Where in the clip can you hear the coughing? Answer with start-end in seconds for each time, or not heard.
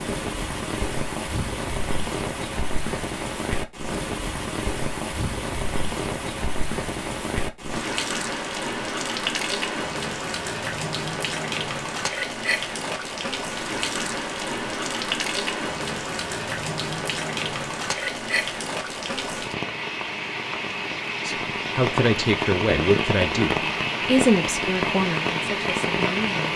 not heard.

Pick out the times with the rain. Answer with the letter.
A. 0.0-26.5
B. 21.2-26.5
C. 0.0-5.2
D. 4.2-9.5
A.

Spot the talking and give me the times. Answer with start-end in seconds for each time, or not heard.
21.2-26.5.